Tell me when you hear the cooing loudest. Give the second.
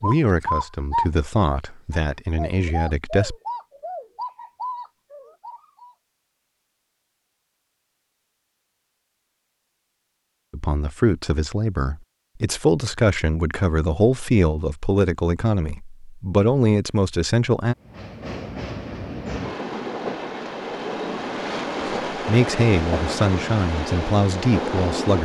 1 s.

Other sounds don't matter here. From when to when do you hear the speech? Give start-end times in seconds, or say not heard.
0.0-3.4, 10.5-17.8, 21.9-25.1.